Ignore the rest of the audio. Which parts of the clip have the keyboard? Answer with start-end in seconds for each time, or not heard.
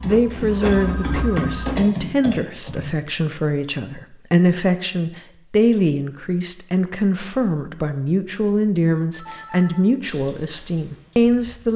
0.0-2.9, 10.0-11.7.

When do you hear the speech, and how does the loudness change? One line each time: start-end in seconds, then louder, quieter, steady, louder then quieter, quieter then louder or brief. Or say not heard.
0.0-11.7 steady.